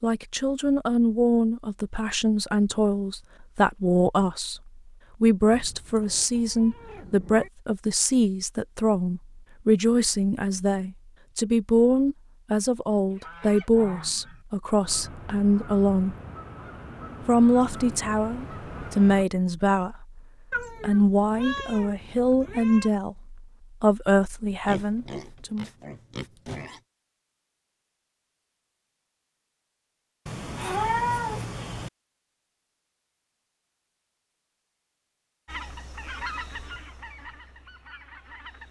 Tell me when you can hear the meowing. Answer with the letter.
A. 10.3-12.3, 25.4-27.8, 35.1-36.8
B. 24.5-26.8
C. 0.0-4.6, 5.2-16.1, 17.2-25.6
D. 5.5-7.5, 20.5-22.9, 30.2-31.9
D.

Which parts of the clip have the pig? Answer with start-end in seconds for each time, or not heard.
24.5-26.8.